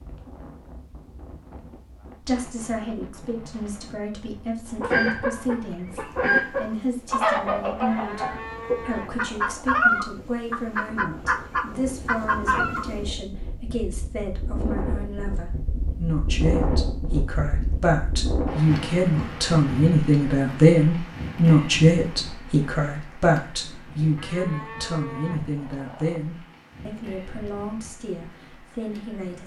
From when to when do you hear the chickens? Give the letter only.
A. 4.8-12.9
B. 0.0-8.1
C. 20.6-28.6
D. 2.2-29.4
A.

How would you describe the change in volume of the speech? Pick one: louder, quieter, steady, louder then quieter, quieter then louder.
louder then quieter.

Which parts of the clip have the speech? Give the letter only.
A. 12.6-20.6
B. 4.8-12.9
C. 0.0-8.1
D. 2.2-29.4
D.